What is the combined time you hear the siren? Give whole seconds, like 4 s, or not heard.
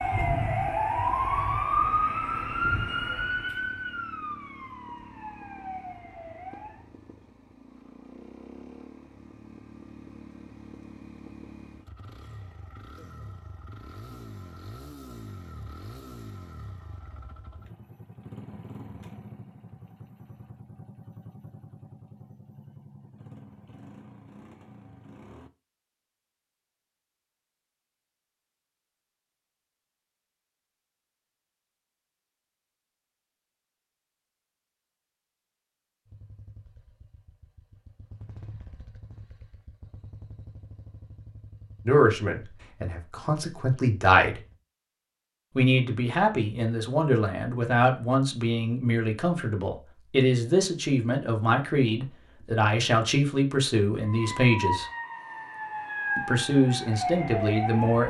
11 s.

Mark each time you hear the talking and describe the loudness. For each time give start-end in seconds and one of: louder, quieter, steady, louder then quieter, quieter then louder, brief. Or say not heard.
41.9-44.4 brief
45.5-54.9 steady
56.1-58.0 brief.